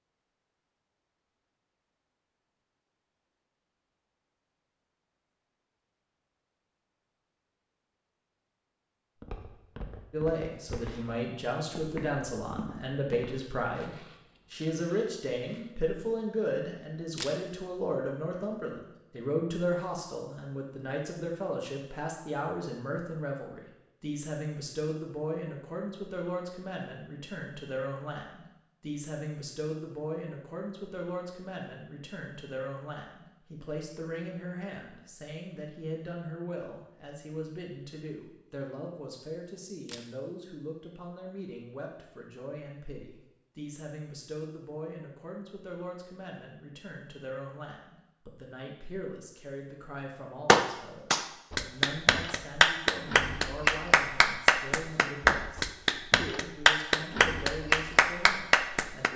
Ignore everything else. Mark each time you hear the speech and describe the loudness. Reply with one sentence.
The speech can be heard from 10.1 to 59.1 s, getting quieter.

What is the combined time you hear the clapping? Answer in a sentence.
You can hear the clapping for 9 seconds altogether.